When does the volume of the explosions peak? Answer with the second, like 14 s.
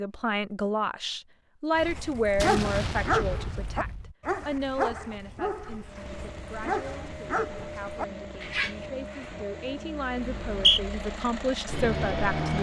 3 s.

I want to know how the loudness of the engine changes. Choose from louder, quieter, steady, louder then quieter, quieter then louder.
louder.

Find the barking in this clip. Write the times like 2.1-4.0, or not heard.
1.8-8.8.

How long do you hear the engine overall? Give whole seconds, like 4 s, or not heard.
7 s.